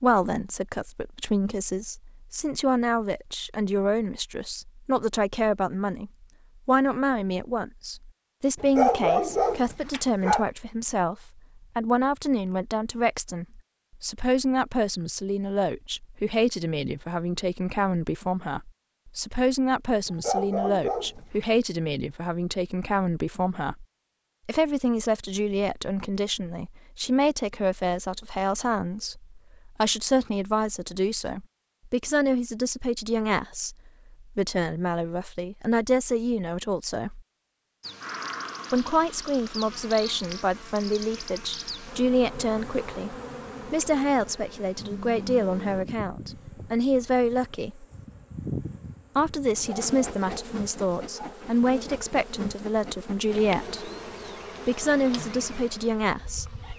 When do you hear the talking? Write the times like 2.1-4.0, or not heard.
0.0-23.9, 24.4-37.2, 38.7-47.9, 49.1-53.9, 54.6-56.5.